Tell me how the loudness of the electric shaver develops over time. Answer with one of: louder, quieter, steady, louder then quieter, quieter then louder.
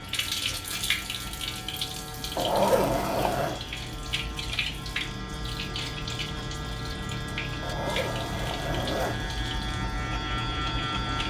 louder.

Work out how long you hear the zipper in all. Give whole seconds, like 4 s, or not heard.
3 s.